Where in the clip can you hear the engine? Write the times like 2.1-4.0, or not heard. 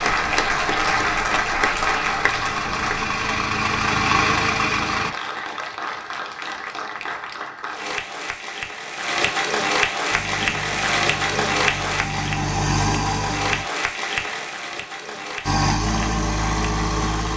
0.0-5.2, 10.1-13.7, 15.4-17.3.